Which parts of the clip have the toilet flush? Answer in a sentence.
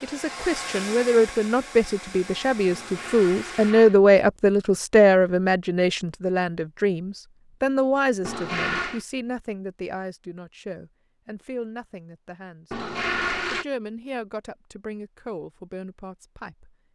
The toilet flush can be heard from 2.7 to 4.0 s, from 8.2 to 9.1 s and from 12.7 to 13.7 s.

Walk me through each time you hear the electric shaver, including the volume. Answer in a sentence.
You can't hear the electric shaver here.